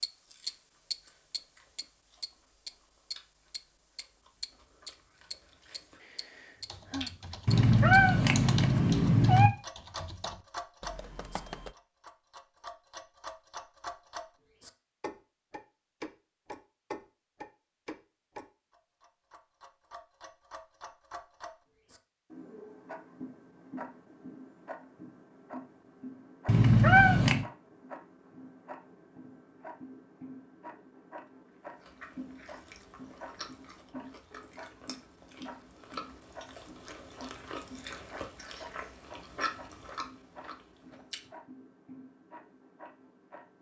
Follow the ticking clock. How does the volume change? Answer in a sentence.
The loudness of the ticking clock goes down.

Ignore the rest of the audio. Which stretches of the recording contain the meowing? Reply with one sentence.
The meowing can be heard from 7.5 to 9.5 s and from 26.4 to 27.4 s.